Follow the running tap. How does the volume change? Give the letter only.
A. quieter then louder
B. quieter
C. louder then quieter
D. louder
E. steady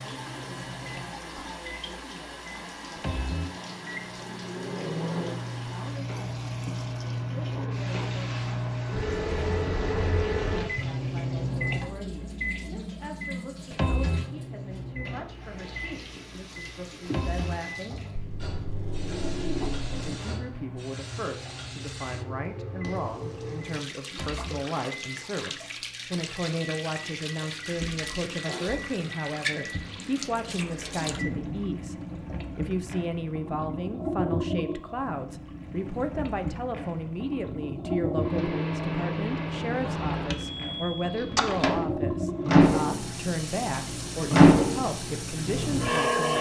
D.